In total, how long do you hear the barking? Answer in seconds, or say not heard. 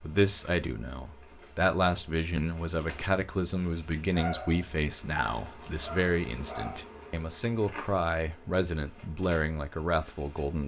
3 s.